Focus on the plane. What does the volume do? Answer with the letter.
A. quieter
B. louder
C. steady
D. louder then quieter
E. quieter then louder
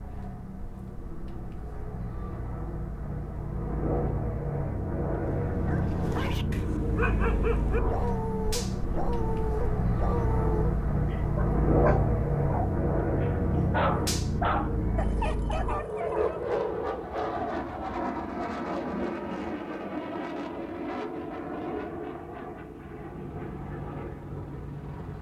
D.